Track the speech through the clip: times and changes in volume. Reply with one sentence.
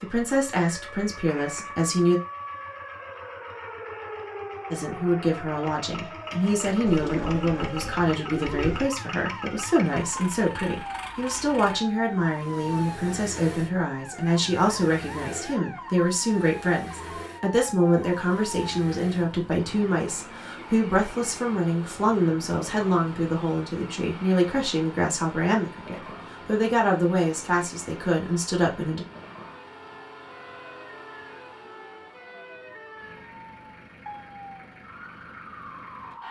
You can hear the speech briefly from 0.0 to 2.2 s; and from 4.7 to 29.1 s, at a steady volume.